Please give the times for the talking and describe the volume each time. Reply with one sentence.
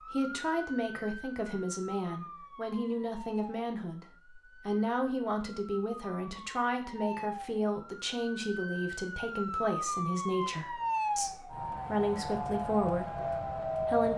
You can hear the talking from 0.1 to 14.1 s, at a steady volume.